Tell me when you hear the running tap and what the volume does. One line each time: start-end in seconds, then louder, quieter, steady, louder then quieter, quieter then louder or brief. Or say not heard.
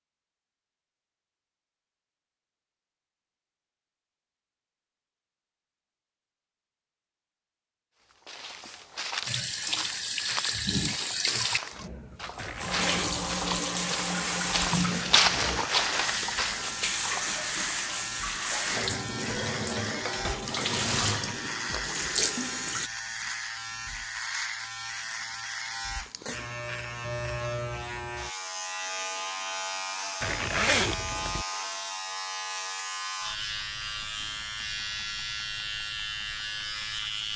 9.2-22.9 steady.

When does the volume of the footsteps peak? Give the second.
15 s.